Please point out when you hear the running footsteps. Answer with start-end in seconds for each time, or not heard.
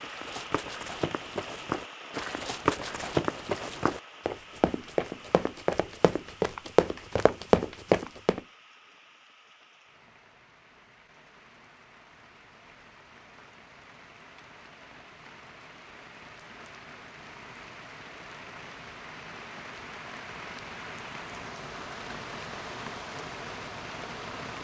0.0-8.4.